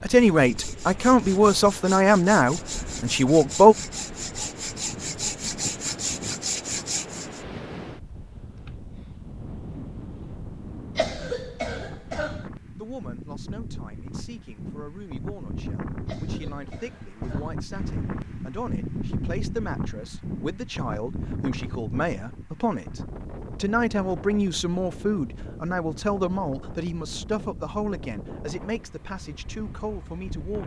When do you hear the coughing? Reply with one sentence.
The coughing can be heard from 10.9 to 12.4 s and from 16.1 to 17.6 s.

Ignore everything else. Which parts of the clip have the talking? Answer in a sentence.
The talking can be heard from 0.0 to 3.8 s and from 12.8 to 30.6 s.